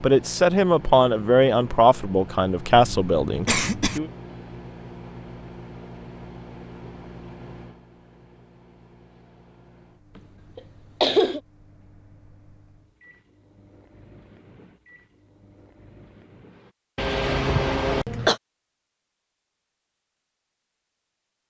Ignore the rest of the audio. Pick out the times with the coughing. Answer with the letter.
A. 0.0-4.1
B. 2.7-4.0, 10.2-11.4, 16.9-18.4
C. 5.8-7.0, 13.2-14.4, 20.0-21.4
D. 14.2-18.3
B.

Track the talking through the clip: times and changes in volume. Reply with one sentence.
You can hear the talking from 0.0 to 4.1 s, getting quieter.